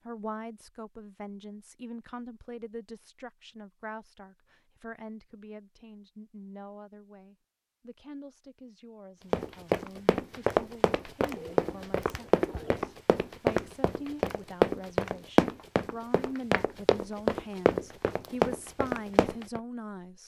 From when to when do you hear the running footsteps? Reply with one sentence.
The running footsteps can be heard from 9.3 to 19.6 s.